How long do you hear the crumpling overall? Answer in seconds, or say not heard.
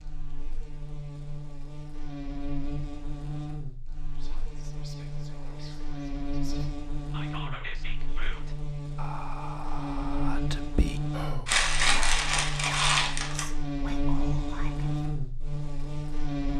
2 s.